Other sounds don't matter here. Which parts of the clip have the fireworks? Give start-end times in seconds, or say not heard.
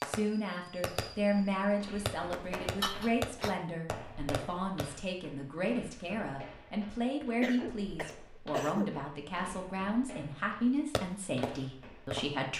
0.0-4.9, 10.9-12.2.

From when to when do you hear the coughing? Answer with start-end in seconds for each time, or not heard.
2.8-3.5, 7.2-8.9.